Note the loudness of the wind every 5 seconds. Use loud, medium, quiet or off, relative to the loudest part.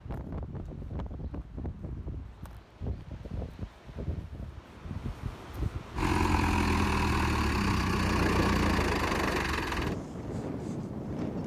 medium, loud, loud.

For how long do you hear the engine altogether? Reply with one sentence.
You can hear the engine for 4 seconds altogether.